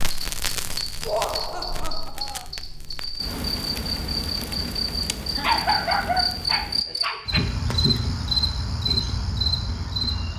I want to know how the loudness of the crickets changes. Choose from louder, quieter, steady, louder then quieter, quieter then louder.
louder.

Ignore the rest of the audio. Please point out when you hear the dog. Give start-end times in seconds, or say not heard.
5.4-7.4.